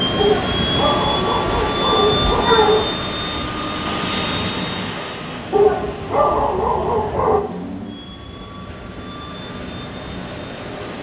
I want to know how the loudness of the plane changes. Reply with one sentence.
The loudness of the plane goes down.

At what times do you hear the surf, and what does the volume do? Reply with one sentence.
You can hear the surf from 0.0 to 10.9 s, getting quieter then louder.